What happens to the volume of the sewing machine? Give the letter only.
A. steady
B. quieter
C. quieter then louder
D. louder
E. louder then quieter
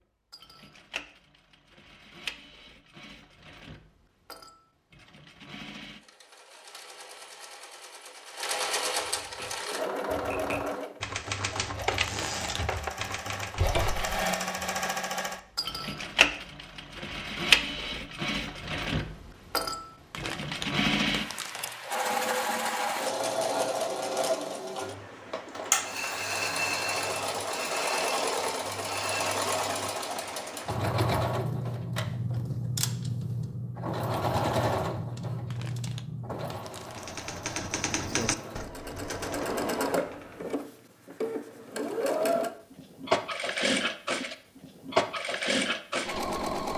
D.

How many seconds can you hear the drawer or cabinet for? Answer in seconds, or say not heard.
2 s.